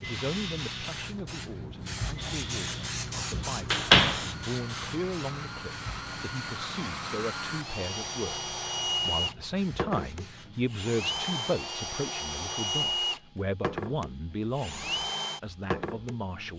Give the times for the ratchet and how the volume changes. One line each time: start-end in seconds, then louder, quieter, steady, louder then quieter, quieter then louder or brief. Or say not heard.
not heard.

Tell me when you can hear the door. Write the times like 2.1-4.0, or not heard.
3.3-4.2.